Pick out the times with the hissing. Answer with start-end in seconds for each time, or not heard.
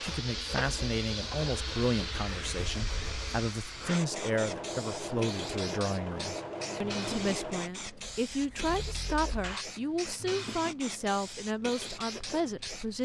0.0-13.0.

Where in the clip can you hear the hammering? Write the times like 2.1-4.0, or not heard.
not heard.